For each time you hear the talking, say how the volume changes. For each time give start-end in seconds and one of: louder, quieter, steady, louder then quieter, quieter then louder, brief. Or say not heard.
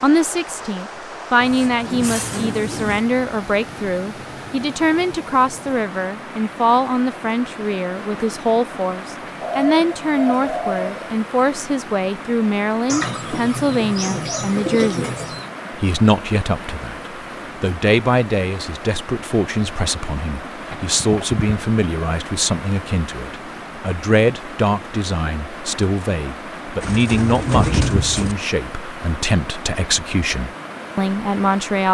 0.0-31.8 steady.